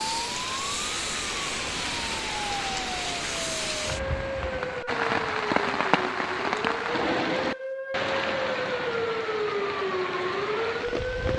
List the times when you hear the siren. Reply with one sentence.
You can hear the siren from 0.0 to 11.3 s.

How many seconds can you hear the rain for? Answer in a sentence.
You can hear the rain for 11 seconds altogether.